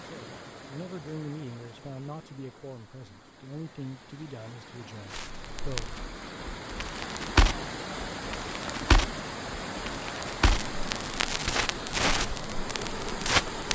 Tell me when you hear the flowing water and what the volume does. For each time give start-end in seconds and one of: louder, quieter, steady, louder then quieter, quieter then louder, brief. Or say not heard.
0.0-13.7 louder.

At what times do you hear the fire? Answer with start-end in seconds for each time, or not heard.
5.1-13.7.